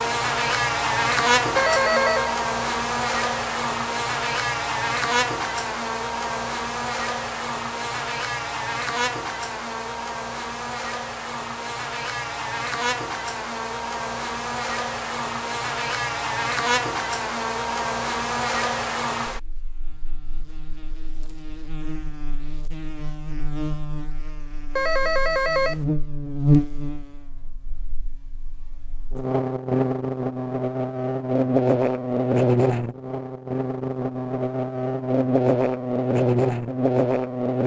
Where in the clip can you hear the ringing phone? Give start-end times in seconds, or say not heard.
1.6-2.4, 24.8-25.9.